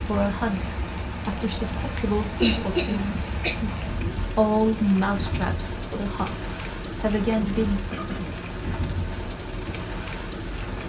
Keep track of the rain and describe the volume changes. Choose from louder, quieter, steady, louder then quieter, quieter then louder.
steady.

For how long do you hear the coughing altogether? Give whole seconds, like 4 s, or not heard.
2 s.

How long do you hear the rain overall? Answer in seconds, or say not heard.
11 s.